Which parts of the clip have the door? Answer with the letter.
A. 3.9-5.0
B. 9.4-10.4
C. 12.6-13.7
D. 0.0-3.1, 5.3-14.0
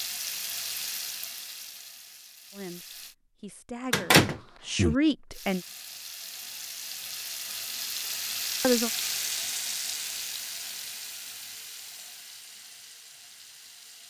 A.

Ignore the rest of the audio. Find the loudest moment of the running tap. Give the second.
9 s.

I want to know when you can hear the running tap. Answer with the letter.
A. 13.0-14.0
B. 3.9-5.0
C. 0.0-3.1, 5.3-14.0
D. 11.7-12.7
C.